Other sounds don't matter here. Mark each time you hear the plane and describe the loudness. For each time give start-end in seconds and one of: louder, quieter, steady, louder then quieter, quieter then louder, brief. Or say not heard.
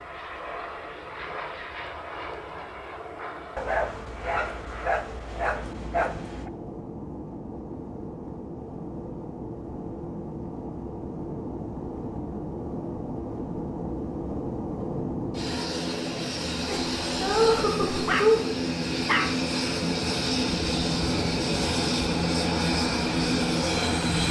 0.0-24.2 louder.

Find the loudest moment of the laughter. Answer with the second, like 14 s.
18 s.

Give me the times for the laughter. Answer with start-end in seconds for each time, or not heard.
16.6-18.4.